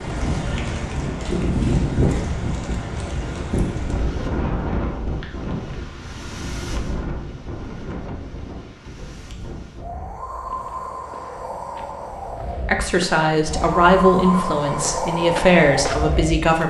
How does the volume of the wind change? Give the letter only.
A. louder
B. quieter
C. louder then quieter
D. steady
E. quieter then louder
E.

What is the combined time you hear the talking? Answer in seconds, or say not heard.
4 s.